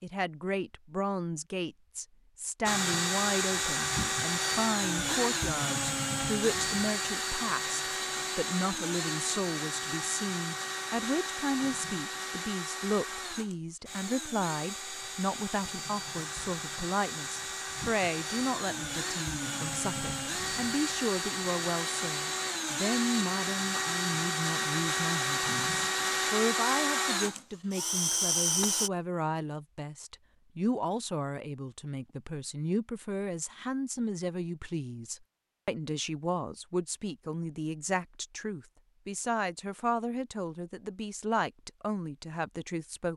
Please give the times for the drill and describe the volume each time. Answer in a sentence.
You can hear the drill from 2.6 to 28.9 s, getting quieter then louder.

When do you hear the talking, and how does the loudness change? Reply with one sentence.
You can hear the talking from 0.0 to 43.1 s, at a steady volume.